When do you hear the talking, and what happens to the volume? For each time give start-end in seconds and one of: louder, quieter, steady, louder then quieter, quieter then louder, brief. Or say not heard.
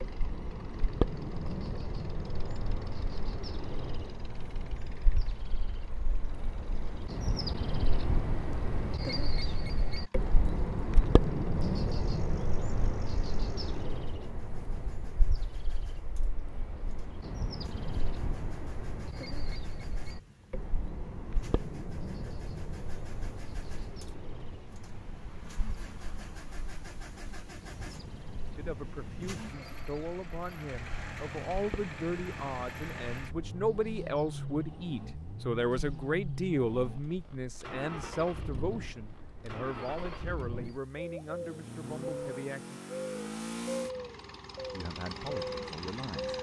28.6-42.8 louder then quieter
44.7-46.3 brief.